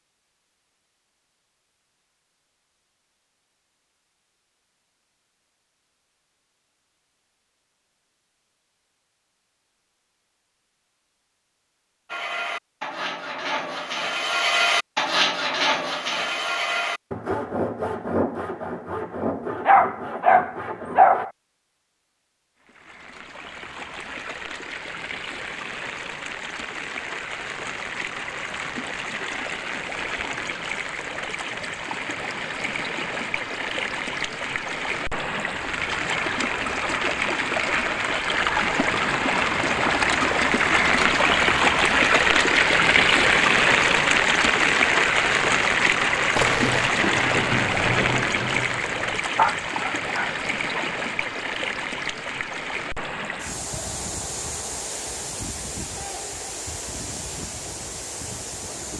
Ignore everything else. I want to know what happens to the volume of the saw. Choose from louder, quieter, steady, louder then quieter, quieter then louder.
louder then quieter.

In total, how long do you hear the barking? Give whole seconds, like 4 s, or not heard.
3 s.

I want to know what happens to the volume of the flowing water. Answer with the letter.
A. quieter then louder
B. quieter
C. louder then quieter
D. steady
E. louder
C.